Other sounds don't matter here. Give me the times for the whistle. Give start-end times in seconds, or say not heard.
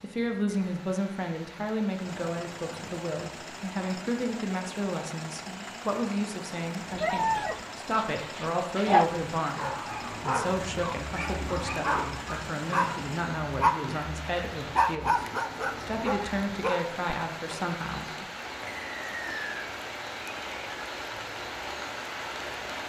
18.6-19.7.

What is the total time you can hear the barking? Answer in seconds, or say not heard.
10 s.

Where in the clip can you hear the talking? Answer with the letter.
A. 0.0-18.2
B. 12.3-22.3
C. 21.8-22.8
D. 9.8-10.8
A.